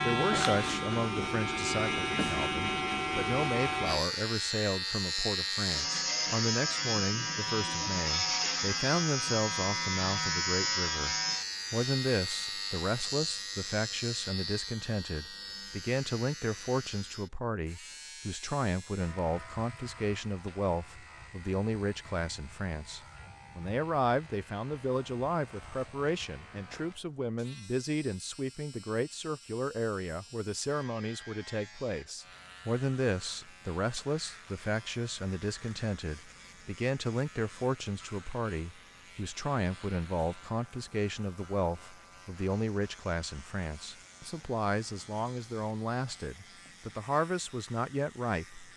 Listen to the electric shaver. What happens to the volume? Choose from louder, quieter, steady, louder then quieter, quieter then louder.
quieter.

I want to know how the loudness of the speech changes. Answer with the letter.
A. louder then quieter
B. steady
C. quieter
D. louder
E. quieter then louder
B.